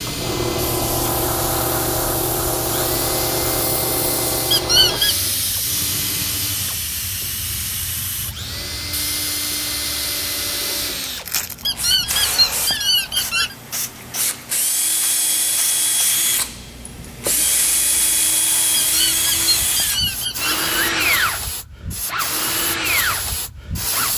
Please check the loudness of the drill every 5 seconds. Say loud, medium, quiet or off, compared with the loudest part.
medium, medium, medium, loud, loud.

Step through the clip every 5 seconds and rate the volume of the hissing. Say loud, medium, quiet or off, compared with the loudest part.
loud, medium, medium, medium, medium.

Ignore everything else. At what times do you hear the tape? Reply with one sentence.
The tape can't be heard in this clip.